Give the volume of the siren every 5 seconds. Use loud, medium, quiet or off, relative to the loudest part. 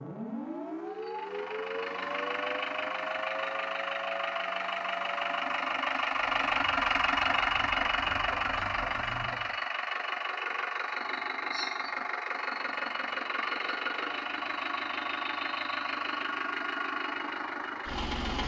loud, medium, off, off.